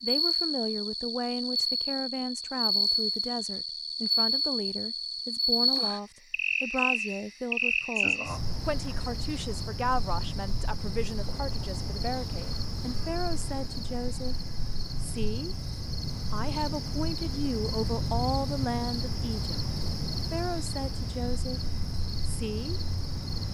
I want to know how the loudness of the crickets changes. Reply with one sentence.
The volume of the crickets goes down.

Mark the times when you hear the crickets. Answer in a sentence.
The crickets can be heard from 0.0 to 23.4 s.